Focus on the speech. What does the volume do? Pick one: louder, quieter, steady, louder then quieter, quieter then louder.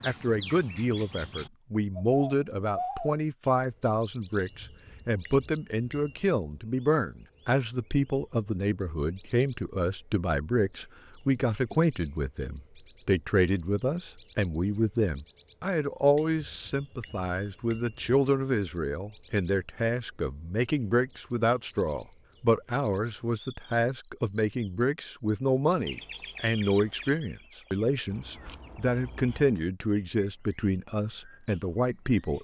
steady.